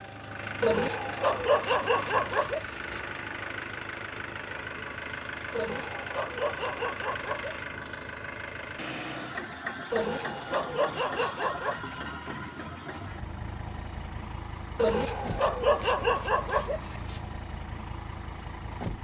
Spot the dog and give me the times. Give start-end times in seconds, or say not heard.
0.6-3.0, 5.5-7.6, 9.9-11.8, 14.8-17.2.